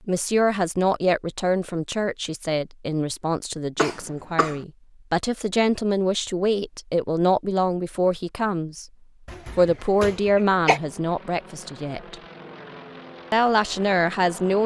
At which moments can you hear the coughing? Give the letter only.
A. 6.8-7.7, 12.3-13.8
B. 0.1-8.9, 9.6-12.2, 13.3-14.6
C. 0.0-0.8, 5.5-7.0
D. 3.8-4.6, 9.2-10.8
D.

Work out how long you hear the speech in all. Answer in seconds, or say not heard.
13 s.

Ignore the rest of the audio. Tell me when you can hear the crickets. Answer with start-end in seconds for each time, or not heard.
not heard.